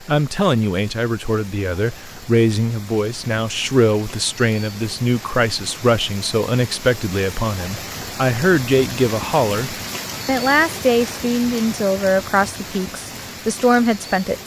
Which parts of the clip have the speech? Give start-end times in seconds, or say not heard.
0.1-14.4.